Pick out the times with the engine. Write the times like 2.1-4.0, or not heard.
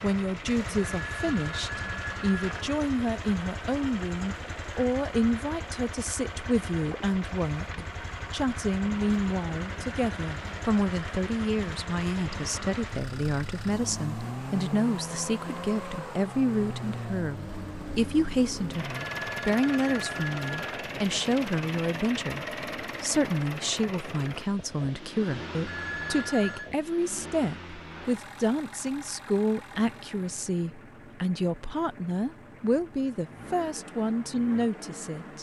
0.0-35.3.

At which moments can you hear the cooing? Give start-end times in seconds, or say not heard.
not heard.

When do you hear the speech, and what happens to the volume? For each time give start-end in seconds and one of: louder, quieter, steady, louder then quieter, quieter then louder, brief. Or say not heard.
0.0-35.3 steady.